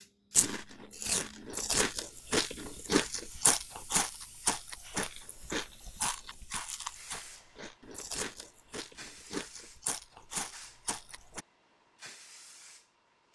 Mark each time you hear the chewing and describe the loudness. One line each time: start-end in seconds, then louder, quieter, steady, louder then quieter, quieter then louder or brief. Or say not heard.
0.3-11.4 quieter.